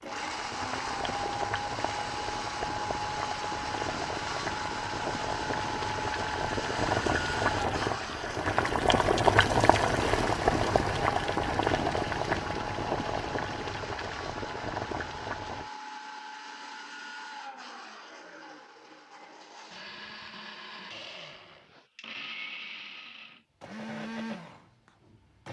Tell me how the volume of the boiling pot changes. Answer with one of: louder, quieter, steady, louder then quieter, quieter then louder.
louder then quieter.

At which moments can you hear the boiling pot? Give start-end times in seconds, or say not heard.
0.0-15.7.